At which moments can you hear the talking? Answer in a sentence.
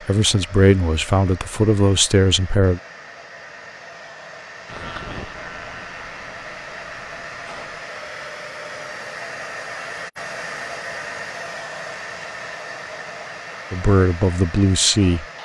You can hear the talking from 0.1 to 2.8 s and from 13.7 to 15.2 s.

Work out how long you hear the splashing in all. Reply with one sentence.
The splashing can't be heard in this clip.